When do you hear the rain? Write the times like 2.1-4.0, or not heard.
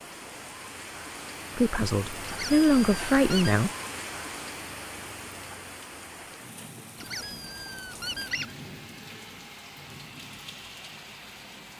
0.0-11.7.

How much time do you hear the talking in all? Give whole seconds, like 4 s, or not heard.
2 s.